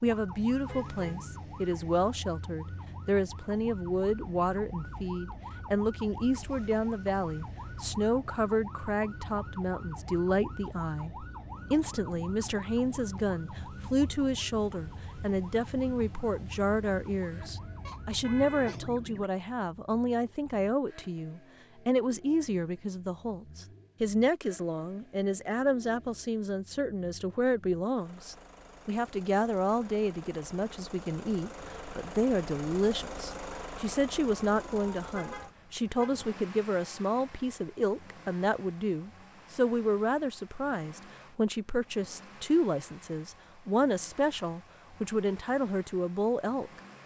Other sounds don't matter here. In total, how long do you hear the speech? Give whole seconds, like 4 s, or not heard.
47 s.